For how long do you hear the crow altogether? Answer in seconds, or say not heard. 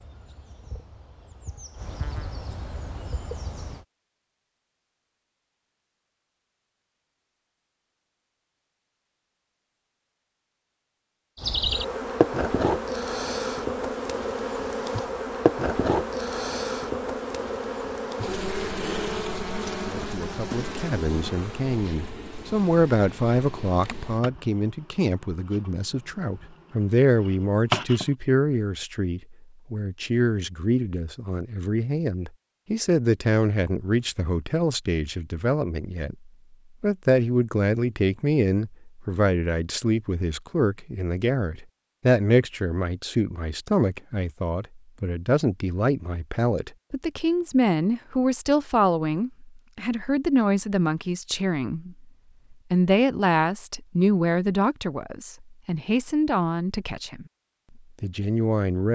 not heard.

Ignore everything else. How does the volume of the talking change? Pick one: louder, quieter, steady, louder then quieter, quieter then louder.
steady.